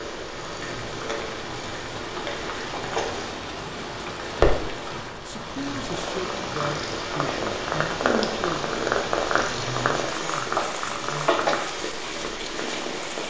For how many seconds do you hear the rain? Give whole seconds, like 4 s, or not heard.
13 s.